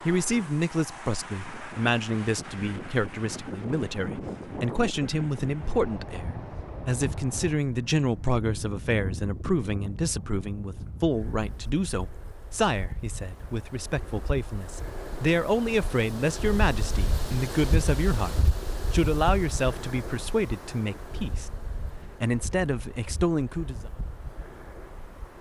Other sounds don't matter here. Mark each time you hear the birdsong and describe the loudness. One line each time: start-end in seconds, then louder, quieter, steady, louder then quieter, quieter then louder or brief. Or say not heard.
not heard.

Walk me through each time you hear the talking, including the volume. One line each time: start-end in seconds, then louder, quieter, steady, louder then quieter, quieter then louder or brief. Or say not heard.
0.0-21.5 steady
22.1-23.9 brief.